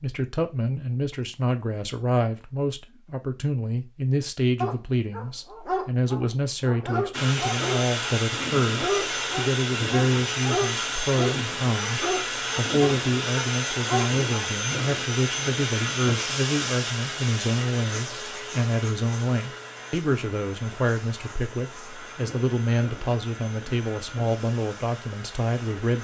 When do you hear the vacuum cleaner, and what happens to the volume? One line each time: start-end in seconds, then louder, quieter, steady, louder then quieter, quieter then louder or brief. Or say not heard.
7.1-25.9 quieter.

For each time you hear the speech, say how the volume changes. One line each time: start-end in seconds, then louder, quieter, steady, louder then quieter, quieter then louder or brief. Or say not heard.
0.0-25.9 steady.